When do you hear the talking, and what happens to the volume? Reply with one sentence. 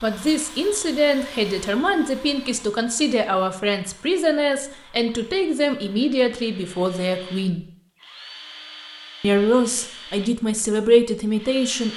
The talking can be heard from 0.0 to 7.7 s, at a steady volume; and briefly from 9.2 to 11.9 s.